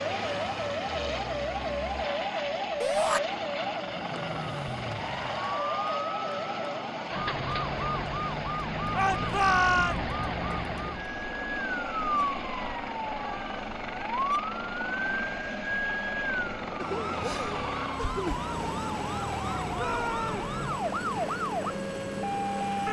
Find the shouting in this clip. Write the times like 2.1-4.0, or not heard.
2.8-3.2, 8.9-9.9, 19.8-20.6.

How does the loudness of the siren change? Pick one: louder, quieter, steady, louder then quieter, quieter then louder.
steady.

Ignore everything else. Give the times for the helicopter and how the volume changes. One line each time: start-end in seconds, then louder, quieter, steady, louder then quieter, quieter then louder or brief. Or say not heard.
0.0-22.8 steady.